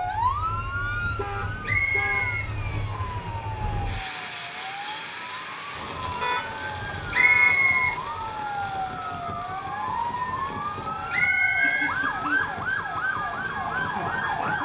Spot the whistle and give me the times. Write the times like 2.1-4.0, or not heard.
1.6-3.2, 7.1-8.0, 11.1-12.7.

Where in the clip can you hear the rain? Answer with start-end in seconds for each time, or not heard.
0.0-14.6.